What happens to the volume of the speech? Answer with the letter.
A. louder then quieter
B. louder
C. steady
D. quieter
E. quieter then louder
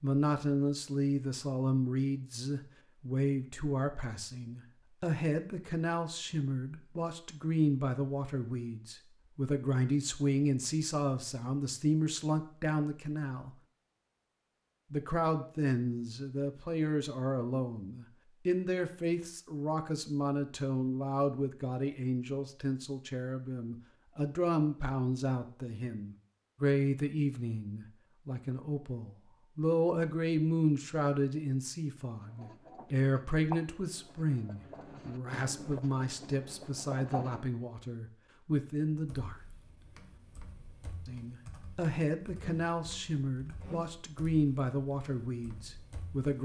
C.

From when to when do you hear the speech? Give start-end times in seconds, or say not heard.
0.0-13.5, 14.9-39.4, 41.0-46.3.